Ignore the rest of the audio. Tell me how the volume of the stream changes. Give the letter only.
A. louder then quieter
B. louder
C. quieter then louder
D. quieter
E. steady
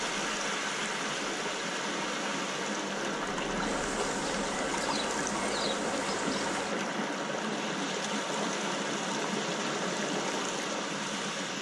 E.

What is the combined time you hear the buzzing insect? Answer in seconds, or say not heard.
3 s.